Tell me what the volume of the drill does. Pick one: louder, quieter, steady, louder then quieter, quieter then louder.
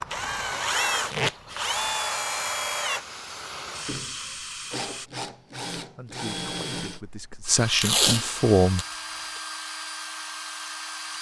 quieter.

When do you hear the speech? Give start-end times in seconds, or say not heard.
5.8-8.8.